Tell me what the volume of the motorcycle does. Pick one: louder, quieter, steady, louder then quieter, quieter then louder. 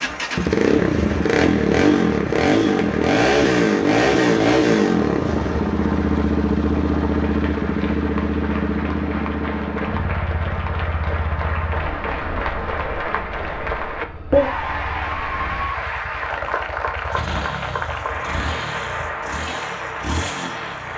quieter then louder.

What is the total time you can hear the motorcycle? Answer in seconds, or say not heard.
21 s.